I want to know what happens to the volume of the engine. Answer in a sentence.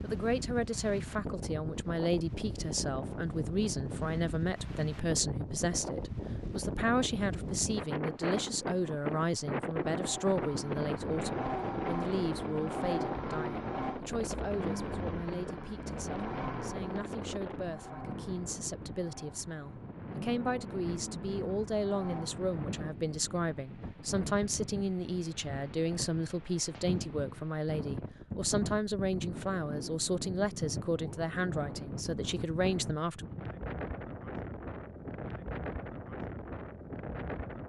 The loudness of the engine goes down.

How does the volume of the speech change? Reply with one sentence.
The volume of the speech goes down, then up.